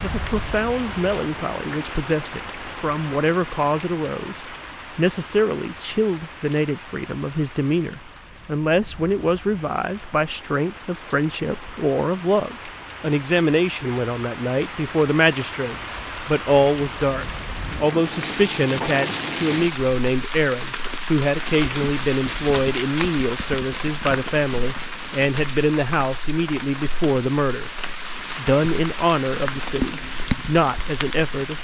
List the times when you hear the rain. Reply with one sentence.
You can hear the rain from 0.0 to 31.5 s.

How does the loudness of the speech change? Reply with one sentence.
The loudness of the speech stays about the same.